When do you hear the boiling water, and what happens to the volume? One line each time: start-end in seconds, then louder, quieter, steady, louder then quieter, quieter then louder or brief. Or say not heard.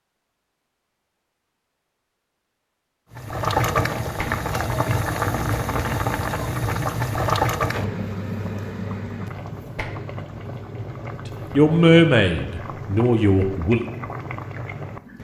3.1-15.1 quieter.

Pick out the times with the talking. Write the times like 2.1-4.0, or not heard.
11.5-13.8.